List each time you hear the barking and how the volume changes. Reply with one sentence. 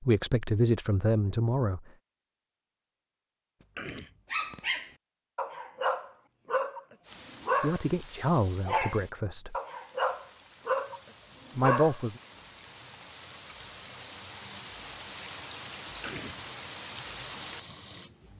You can hear the barking briefly from 4.0 to 6.8 s; and from 7.4 to 12.0 s, getting louder then quieter.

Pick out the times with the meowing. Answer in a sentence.
You can't hear the meowing here.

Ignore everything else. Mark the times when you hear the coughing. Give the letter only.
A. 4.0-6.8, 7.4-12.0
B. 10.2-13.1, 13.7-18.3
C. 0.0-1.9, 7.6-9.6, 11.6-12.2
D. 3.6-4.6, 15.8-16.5
D.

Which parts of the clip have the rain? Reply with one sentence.
The rain can be heard from 7.0 to 18.3 s.